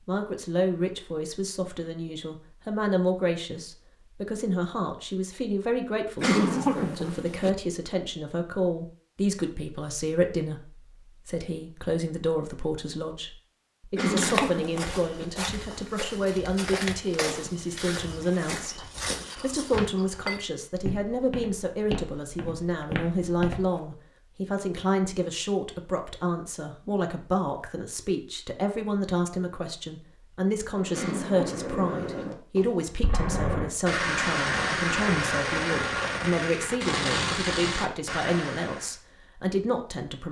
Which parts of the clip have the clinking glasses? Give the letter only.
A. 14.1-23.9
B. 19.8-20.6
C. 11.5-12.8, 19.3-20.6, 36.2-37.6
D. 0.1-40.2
B.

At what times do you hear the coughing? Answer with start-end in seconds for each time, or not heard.
6.2-7.5, 13.9-15.2, 30.9-32.2.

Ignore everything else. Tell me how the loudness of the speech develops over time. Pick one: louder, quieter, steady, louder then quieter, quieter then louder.
steady.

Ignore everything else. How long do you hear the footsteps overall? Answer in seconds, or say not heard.
10 s.